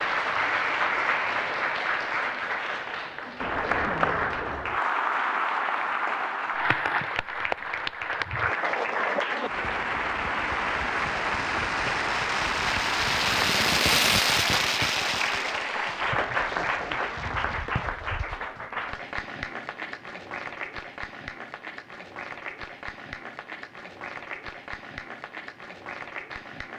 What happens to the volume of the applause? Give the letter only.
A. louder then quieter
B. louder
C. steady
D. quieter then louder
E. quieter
E.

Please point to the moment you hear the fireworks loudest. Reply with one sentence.
The loudest moment of the fireworks is at 14 seconds.